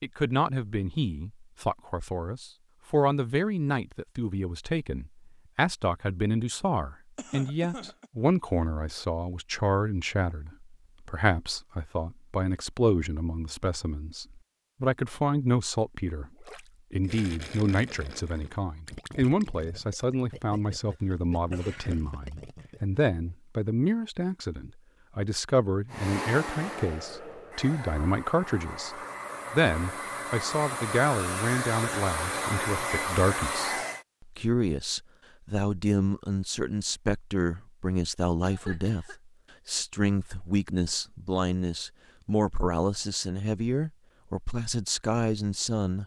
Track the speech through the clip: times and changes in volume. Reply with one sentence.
You can hear the speech from 0.0 to 46.0 s, at a steady volume.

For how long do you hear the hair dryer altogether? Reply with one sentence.
You can hear the hair dryer for 8 seconds altogether.